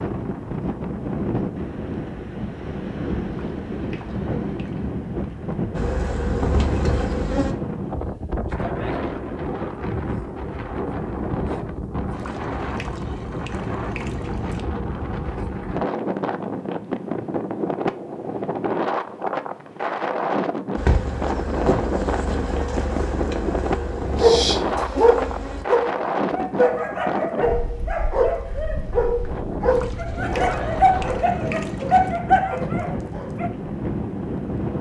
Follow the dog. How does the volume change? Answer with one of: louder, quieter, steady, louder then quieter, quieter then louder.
steady.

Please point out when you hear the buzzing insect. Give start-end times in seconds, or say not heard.
5.8-7.5, 20.8-25.6.